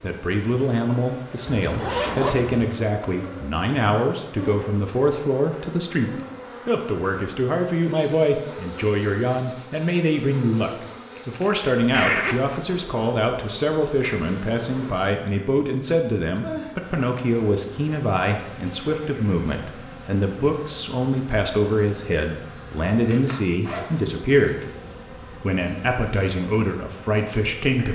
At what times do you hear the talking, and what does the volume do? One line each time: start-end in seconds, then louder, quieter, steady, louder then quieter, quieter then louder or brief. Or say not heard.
0.0-27.9 steady.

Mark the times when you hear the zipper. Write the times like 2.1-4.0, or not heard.
1.5-2.6, 11.2-12.8, 23.6-24.2.